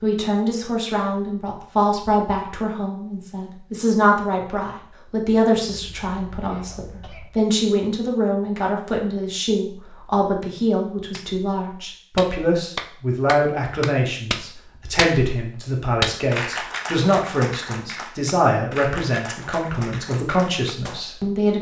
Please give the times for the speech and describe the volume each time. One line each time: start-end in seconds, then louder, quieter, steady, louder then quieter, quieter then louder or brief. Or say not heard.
0.0-21.5 steady.